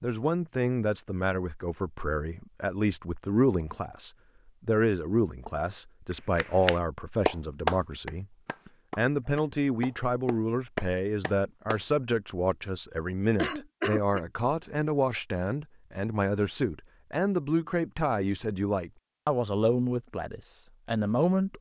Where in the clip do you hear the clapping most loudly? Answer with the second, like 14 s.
8 s.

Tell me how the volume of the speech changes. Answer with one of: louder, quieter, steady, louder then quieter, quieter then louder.
steady.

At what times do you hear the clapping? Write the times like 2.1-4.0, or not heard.
6.1-11.8.